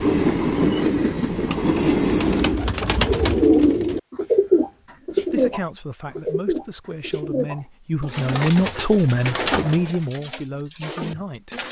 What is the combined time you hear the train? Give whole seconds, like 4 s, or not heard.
3 s.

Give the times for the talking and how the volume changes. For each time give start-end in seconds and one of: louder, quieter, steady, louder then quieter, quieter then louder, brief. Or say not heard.
5.1-11.6 louder then quieter.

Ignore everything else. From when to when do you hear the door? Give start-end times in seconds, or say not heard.
not heard.